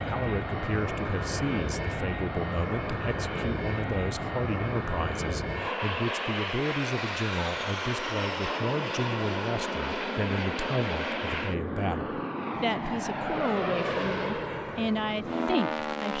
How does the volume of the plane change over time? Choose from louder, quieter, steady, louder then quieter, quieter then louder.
steady.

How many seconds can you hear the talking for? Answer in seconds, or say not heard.
16 s.